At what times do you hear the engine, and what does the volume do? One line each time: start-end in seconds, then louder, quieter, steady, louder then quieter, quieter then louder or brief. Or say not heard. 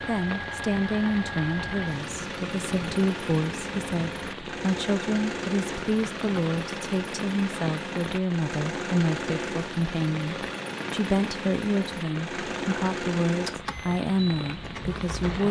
0.0-15.4 steady.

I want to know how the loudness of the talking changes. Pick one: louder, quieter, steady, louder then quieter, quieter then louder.
steady.